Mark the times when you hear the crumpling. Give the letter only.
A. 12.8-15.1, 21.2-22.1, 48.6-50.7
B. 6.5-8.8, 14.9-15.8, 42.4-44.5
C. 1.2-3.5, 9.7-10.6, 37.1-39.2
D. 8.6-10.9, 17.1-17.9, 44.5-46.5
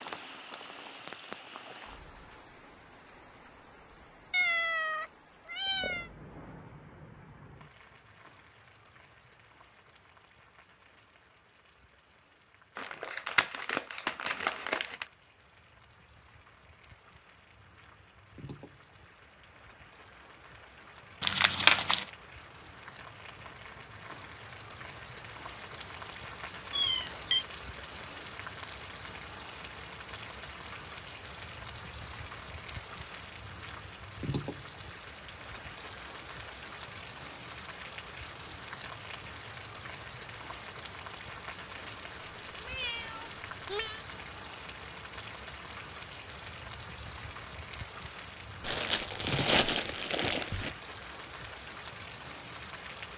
A.